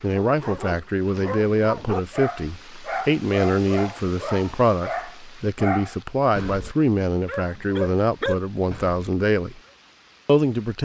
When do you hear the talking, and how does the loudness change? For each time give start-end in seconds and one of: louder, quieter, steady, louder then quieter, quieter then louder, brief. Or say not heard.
0.0-9.6 steady
10.2-10.8 brief.